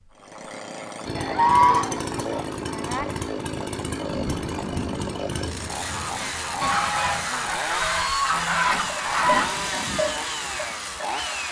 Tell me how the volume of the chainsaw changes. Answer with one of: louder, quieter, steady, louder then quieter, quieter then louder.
steady.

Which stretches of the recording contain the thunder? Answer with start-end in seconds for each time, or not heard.
3.9-7.3.